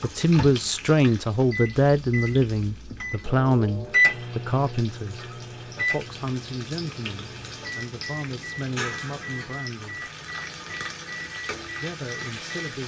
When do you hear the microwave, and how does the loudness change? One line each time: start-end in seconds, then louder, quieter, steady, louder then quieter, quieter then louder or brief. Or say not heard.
0.0-12.8 louder then quieter.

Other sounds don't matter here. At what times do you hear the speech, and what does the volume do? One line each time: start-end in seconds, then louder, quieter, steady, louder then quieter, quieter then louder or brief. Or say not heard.
0.0-10.1 quieter
11.8-12.8 brief.